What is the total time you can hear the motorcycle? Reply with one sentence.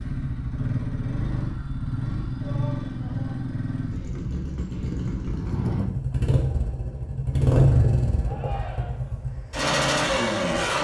You can hear the motorcycle for 11 seconds altogether.